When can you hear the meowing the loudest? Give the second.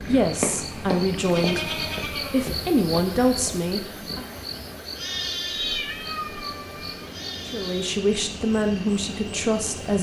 6 s.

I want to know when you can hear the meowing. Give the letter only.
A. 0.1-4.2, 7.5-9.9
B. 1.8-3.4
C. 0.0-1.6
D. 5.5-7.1
D.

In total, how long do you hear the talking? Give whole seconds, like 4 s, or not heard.
7 s.